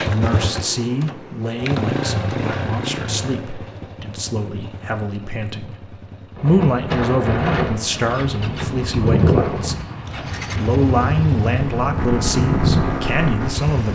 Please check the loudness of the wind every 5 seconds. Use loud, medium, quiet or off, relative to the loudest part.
off, loud, loud.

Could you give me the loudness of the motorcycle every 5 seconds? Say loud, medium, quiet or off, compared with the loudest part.
loud, medium, loud.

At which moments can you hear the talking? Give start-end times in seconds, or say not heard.
0.0-9.8, 10.6-13.9.